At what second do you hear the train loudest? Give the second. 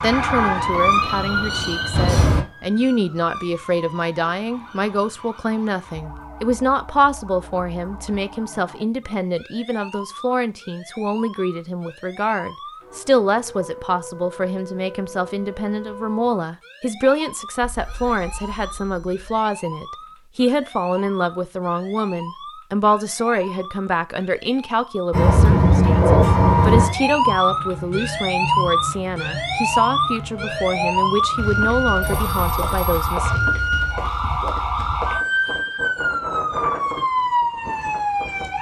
26 s.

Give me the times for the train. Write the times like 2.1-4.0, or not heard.
0.0-2.5, 25.1-32.4.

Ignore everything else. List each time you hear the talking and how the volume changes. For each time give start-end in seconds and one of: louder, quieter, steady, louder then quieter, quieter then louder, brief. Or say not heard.
0.0-33.4 steady.